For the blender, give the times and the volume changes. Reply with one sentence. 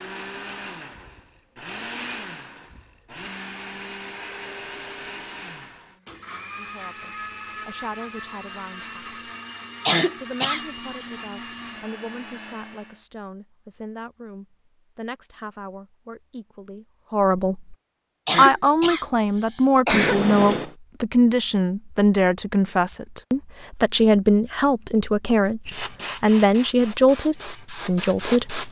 The blender can be heard from 0.0 to 13.0 s, at a steady volume.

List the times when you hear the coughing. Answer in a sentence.
The coughing can be heard from 9.8 to 11.1 s and from 18.2 to 20.1 s.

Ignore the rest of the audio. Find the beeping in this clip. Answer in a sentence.
You can hear the beeping from 19.9 to 20.8 s.